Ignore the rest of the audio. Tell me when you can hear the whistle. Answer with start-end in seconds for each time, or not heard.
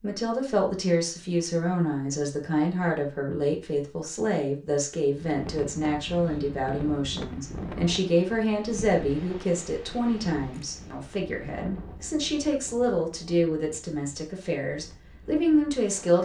not heard.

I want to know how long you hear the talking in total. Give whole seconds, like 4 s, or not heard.
16 s.